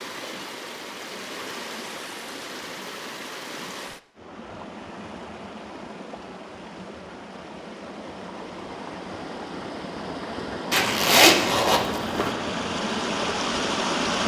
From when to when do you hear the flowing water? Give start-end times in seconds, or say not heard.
0.0-14.2.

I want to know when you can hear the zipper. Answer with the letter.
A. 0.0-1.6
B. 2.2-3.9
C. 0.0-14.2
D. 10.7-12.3
D.